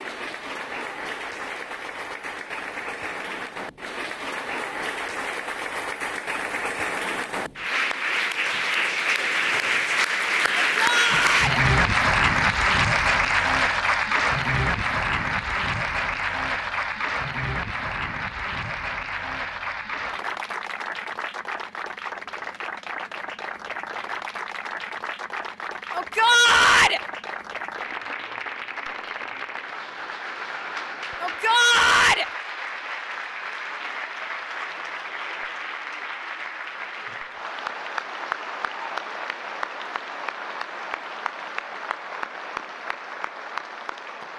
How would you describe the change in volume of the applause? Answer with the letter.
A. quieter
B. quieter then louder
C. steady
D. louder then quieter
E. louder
D.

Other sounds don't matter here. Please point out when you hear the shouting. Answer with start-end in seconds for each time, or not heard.
10.7-11.6, 25.9-27.0, 31.2-32.2.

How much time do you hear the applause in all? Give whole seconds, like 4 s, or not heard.
44 s.